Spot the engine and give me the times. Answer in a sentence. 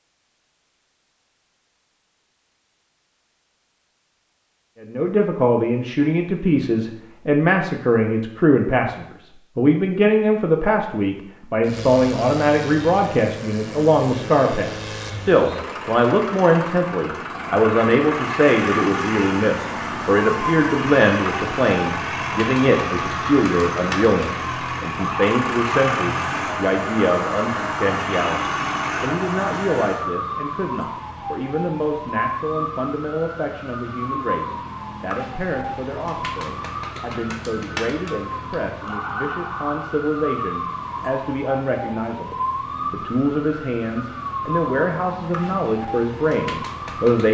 The engine can be heard from 11.6 to 30.1 s.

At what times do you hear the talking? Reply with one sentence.
The talking can be heard from 4.8 to 47.2 s.